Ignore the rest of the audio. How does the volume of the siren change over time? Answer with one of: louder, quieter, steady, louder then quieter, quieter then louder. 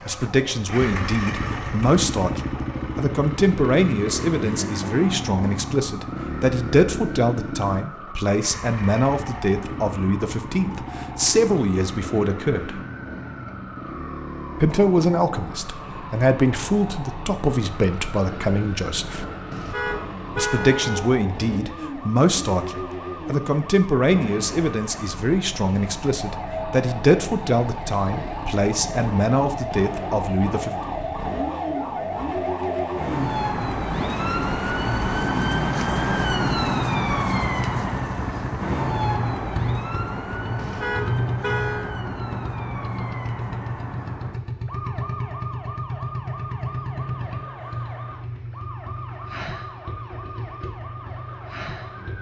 louder then quieter.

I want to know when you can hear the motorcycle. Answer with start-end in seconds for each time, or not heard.
0.0-52.1.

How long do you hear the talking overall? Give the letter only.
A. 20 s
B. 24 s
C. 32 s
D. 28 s
D.